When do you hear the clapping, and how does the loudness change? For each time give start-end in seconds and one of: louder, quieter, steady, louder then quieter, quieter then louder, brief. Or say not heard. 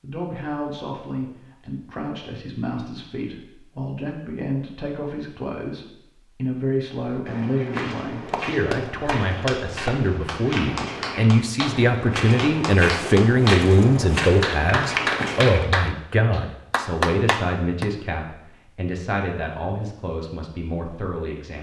7.8-17.9 louder.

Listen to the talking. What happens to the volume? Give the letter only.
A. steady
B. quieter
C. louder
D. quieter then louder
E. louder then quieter
E.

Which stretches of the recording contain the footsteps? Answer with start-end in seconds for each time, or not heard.
7.0-15.7.